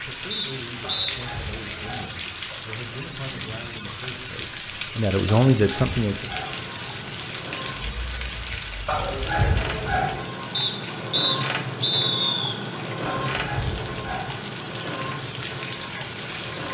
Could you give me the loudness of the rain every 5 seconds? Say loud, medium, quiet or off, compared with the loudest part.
loud, loud, medium, loud.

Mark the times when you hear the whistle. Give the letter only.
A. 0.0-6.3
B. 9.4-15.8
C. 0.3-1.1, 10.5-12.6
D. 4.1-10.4
C.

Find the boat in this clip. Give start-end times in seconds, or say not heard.
6.2-16.6.